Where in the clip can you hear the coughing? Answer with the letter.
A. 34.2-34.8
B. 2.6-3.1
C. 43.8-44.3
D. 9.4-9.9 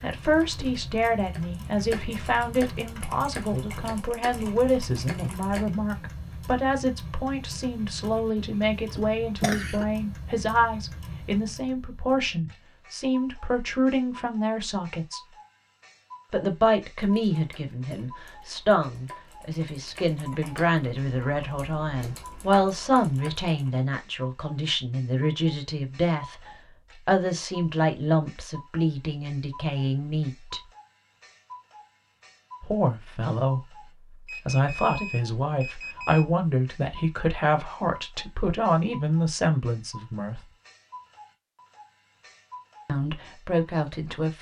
D.